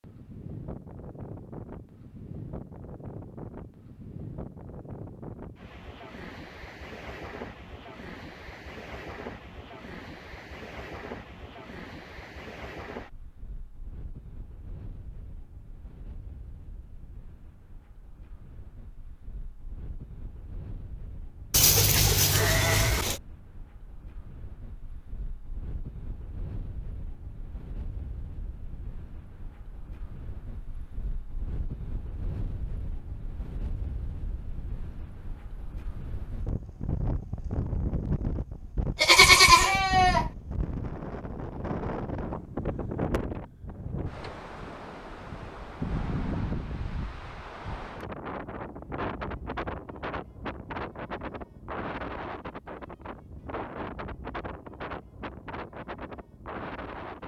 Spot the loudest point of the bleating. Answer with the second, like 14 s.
39 s.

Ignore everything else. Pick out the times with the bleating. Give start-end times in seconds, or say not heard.
21.5-23.2, 39.0-40.3.